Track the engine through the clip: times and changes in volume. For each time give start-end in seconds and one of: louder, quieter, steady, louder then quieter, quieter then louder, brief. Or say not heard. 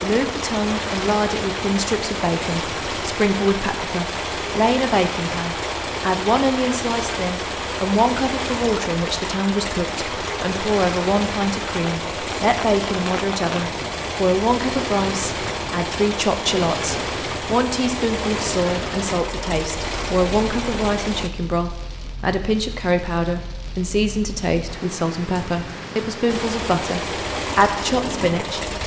0.0-21.3 steady
26.2-28.8 brief.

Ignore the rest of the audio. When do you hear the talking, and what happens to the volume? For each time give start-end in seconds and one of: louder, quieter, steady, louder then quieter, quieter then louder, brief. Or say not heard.
0.0-28.8 steady.